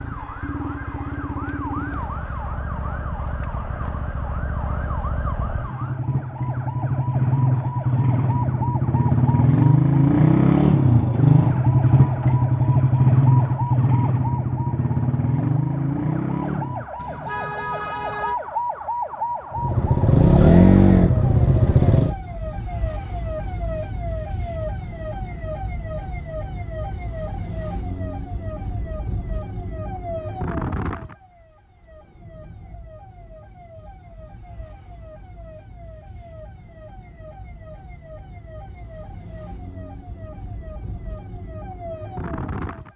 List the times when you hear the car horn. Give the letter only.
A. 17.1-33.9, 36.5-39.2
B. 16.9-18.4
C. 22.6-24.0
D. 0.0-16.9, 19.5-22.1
B.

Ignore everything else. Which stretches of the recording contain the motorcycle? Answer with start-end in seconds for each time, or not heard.
0.0-16.9, 19.5-22.1.